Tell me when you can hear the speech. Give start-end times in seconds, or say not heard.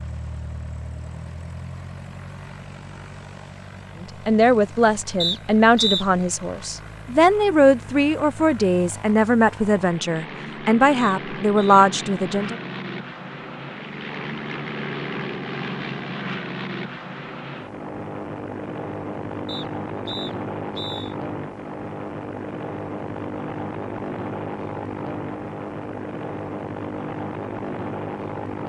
4.0-12.6.